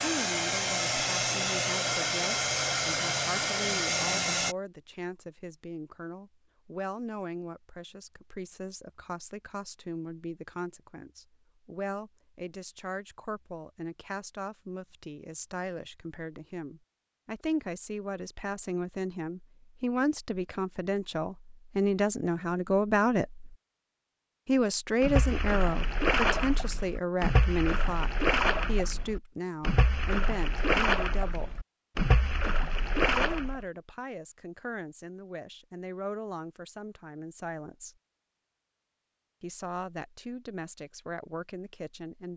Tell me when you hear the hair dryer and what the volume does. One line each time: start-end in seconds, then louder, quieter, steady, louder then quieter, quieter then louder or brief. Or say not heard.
0.0-4.5 steady.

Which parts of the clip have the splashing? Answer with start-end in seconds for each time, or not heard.
25.0-33.6.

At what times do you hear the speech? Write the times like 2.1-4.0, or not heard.
0.0-23.6, 24.4-31.6, 33.1-38.0, 39.4-42.3.